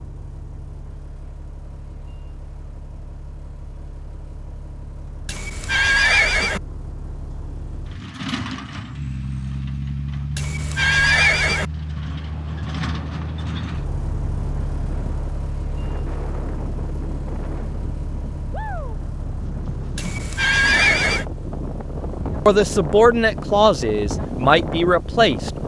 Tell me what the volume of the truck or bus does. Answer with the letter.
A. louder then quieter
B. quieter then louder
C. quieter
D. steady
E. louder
A.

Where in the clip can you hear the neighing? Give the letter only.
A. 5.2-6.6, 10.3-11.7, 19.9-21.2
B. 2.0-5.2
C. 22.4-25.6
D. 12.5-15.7
A.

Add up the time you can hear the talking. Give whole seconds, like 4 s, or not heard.
3 s.